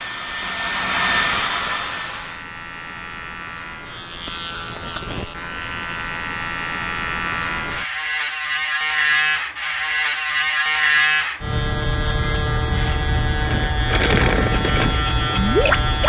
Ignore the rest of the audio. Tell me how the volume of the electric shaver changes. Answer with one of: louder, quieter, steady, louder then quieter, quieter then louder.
louder.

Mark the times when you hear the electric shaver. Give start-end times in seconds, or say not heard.
0.0-16.0.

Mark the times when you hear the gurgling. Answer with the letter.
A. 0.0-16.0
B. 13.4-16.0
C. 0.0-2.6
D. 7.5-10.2
B.